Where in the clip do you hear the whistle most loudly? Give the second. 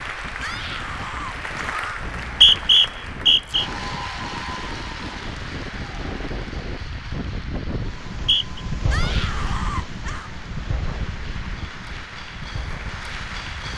3 s.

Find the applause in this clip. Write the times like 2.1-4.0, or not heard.
0.0-13.7.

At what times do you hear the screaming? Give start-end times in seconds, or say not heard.
0.4-1.9, 8.9-10.3.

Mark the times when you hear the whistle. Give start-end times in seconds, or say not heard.
2.0-3.6, 8.1-8.6.